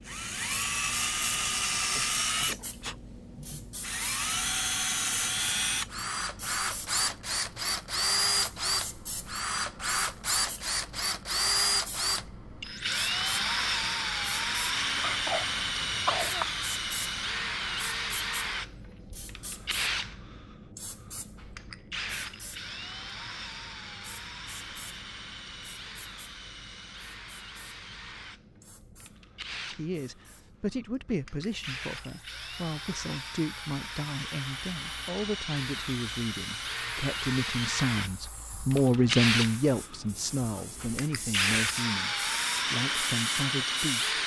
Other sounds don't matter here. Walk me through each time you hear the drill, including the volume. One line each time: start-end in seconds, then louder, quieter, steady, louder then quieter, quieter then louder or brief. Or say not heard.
0.1-44.2 quieter then louder.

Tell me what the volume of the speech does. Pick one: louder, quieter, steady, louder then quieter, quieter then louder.
louder then quieter.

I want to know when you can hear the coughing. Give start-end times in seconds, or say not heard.
15.0-16.4.